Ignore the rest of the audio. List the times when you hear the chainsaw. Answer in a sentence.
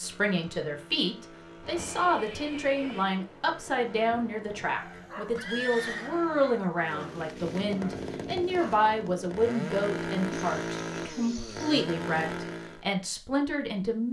You can hear the chainsaw from 0.0 to 12.8 s.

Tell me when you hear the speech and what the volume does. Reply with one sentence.
You can hear the speech from 0.0 to 14.0 s, at a steady volume.